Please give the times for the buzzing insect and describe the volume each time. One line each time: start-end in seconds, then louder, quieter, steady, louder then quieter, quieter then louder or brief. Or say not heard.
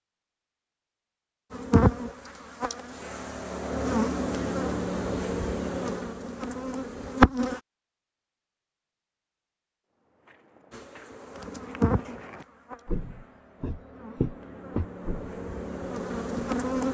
1.5-7.6 louder then quieter
10.7-16.9 quieter then louder.